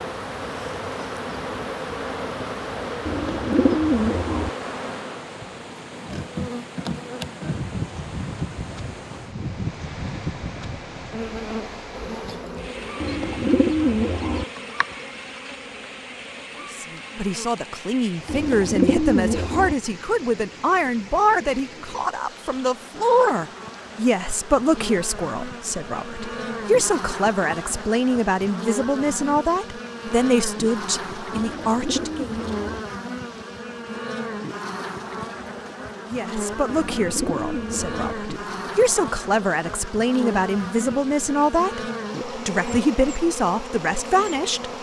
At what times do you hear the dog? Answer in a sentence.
The dog can't be heard in this clip.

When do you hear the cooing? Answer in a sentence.
The cooing can be heard from 3.0 to 4.5 s, from 13.0 to 14.4 s, from 18.2 to 19.8 s, from 31.4 to 32.8 s and from 36.7 to 38.1 s.